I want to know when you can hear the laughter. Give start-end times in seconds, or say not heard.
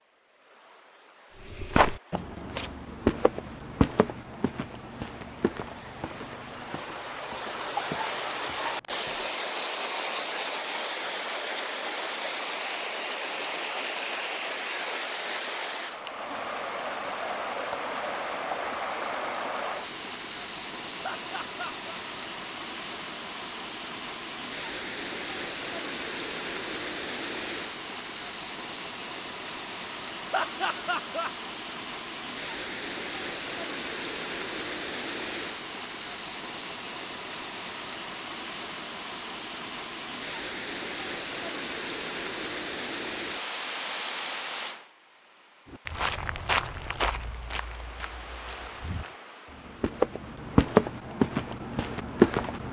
21.0-22.0, 30.3-31.3.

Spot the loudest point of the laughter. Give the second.
31 s.